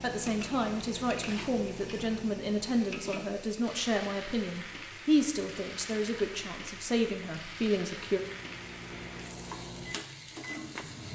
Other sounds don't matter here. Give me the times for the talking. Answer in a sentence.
You can hear the talking from 0.0 to 8.2 s.